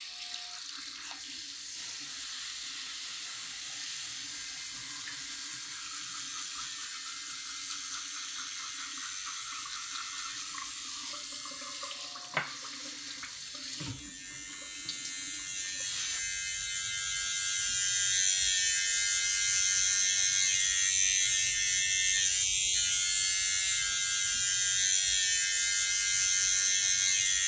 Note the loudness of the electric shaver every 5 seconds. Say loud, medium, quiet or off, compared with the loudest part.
quiet, quiet, quiet, loud, loud, loud.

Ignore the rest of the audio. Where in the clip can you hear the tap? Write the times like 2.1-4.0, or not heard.
0.0-16.2.